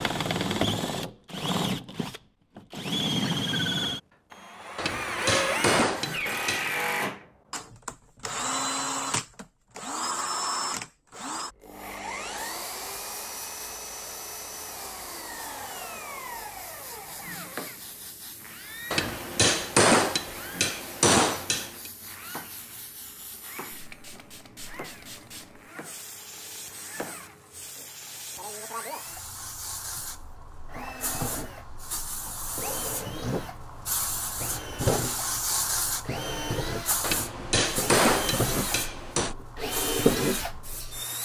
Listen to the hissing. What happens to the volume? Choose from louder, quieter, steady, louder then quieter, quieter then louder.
louder.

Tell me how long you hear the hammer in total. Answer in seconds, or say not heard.
7 s.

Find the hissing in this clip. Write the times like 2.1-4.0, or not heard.
11.7-41.2.